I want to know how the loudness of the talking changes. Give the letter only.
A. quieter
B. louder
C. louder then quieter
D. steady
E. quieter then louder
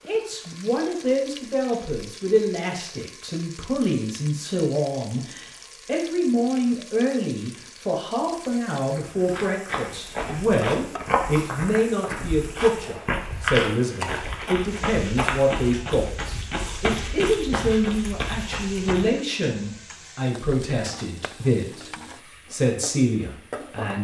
D.